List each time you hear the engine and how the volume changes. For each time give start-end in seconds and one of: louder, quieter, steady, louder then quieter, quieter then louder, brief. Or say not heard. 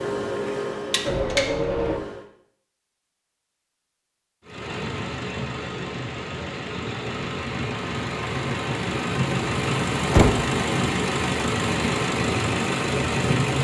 0.0-2.2 brief
4.5-13.6 louder.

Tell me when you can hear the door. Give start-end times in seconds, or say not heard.
10.1-10.5.